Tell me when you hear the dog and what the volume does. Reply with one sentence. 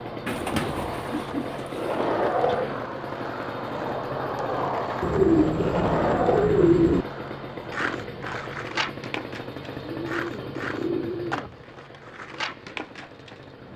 You can't hear the dog here.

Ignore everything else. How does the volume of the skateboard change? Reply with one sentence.
The loudness of the skateboard goes down.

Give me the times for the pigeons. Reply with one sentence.
The pigeons can be heard from 0.2 to 2.8 s, from 5.0 to 7.0 s and from 9.9 to 11.7 s.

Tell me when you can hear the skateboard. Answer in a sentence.
The skateboard can be heard from 0.0 to 13.7 s.